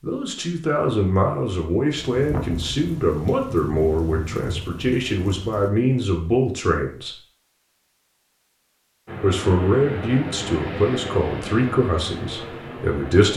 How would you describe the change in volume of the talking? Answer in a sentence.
The loudness of the talking stays about the same.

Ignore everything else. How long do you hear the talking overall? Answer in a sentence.
The talking can be heard for 11 seconds in total.